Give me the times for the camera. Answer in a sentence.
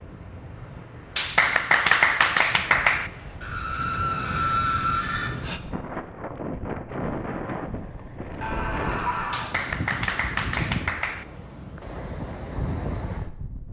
The camera can't be heard in this clip.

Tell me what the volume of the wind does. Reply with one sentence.
The volume of the wind goes up.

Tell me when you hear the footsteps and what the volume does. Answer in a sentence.
The footsteps can't be heard in this clip.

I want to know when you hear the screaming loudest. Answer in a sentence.
The volume of the screaming peaks at 5 seconds.